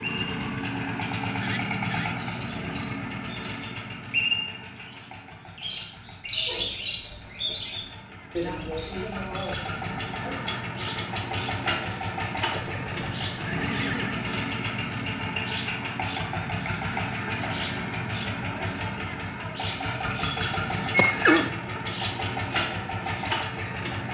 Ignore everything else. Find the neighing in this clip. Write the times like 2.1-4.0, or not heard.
1.4-2.1, 12.5-14.2, 20.9-21.6.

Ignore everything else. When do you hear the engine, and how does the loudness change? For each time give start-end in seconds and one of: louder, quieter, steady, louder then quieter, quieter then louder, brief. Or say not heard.
0.0-24.0 quieter then louder.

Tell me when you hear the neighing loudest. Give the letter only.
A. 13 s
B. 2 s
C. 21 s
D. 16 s
C.